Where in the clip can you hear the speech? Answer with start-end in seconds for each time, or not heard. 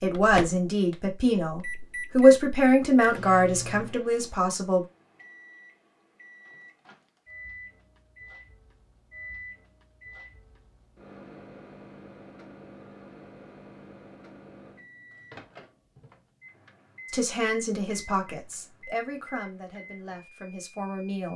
0.0-4.8, 17.1-21.3.